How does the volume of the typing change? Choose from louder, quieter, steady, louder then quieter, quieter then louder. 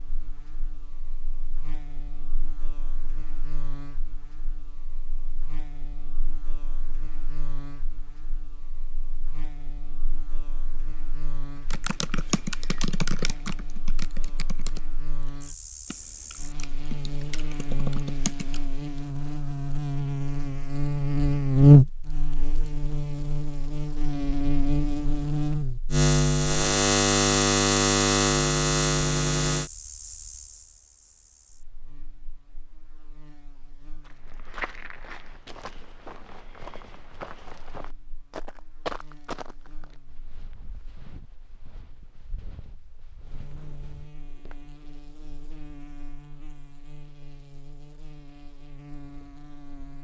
quieter then louder.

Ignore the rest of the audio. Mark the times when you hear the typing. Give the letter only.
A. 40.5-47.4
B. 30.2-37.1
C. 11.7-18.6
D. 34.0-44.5
C.